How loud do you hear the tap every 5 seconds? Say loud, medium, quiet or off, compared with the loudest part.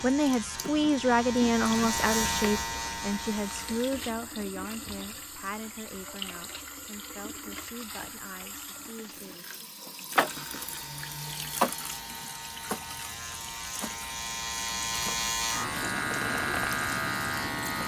medium, medium, loud, medium.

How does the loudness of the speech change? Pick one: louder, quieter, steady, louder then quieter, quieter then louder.
quieter.